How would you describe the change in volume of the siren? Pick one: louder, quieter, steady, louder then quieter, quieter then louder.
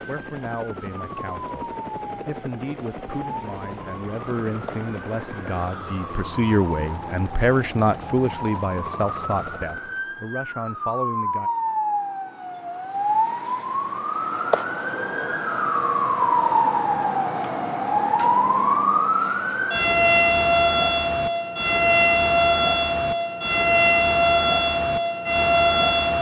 louder.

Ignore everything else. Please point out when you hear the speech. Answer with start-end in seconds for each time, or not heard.
0.1-11.5.